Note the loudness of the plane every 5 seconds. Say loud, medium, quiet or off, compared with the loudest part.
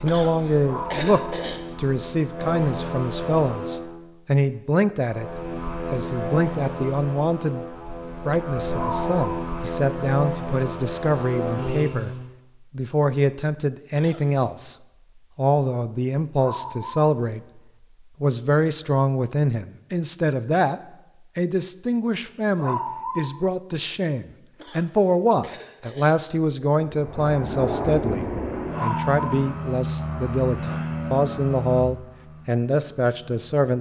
loud, loud, loud, off, off, loud, loud.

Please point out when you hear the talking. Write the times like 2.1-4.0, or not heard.
0.0-5.3, 5.9-7.7, 8.2-14.8, 15.3-17.6, 18.2-33.7.